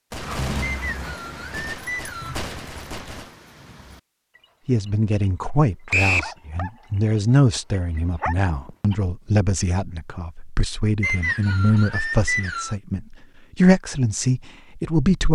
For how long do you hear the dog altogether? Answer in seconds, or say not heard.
9 s.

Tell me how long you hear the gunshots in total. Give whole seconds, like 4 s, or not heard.
3 s.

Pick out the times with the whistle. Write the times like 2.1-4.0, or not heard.
0.6-2.4, 5.9-6.3, 11.0-12.8.